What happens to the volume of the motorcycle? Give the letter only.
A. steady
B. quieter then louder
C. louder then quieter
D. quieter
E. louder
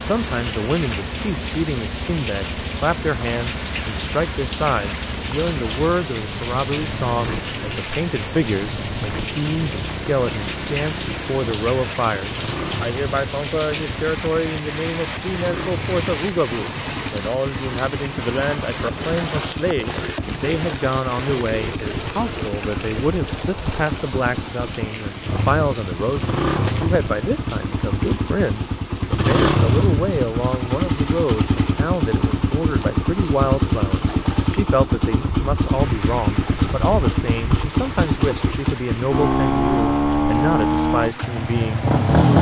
E.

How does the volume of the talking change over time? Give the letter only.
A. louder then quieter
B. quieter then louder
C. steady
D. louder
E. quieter
C.